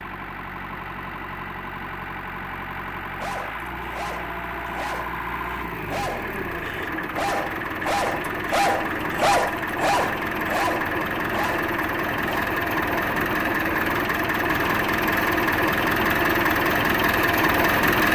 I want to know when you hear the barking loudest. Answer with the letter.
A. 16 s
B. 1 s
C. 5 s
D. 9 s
D.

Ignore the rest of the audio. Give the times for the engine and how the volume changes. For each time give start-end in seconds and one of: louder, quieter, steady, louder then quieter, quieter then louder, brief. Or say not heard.
0.0-18.1 louder.